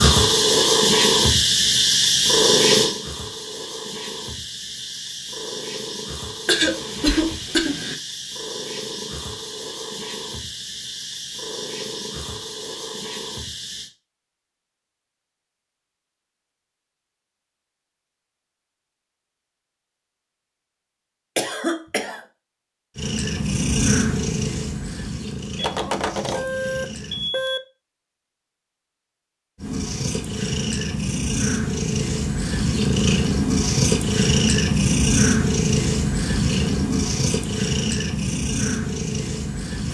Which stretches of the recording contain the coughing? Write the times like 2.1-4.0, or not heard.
6.5-8.0, 21.4-22.2.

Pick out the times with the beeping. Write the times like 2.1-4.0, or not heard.
25.6-27.6.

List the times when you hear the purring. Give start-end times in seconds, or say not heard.
0.0-13.9, 22.9-27.3, 29.6-39.8.